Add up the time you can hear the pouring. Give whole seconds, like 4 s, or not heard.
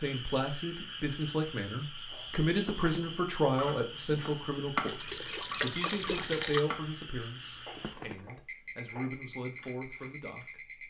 2 s.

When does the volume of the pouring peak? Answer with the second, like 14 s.
6 s.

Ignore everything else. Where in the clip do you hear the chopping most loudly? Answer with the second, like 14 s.
5 s.